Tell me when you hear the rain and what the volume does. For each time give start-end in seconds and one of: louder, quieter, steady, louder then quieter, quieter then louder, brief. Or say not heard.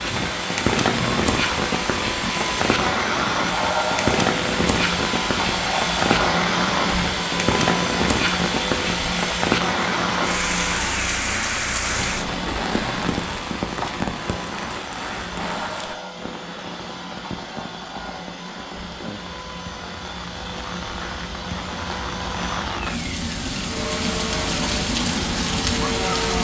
0.0-26.3 quieter then louder.